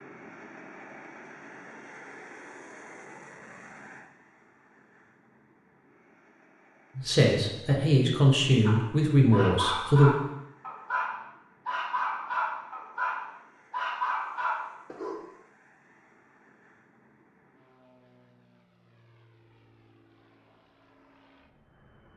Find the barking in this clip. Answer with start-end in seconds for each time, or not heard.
8.7-15.2.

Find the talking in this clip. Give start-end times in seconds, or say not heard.
7.0-10.2.